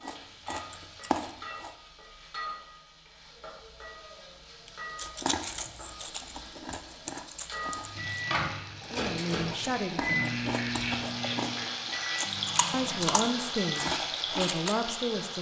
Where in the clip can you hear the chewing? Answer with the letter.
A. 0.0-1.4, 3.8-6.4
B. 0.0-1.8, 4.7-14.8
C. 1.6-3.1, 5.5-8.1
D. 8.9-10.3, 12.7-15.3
B.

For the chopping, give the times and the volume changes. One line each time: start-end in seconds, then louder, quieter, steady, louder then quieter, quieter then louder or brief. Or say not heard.
not heard.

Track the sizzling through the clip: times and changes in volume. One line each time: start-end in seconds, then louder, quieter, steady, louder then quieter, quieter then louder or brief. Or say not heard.
0.0-15.3 louder.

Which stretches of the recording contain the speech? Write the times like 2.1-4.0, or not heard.
8.9-10.3, 12.7-15.3.